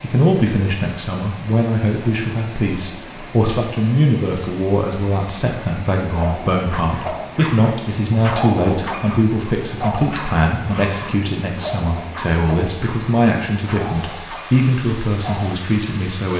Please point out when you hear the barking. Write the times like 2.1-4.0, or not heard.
6.1-15.6.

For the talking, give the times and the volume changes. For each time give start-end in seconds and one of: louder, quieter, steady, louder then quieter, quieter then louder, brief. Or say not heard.
0.0-16.3 steady.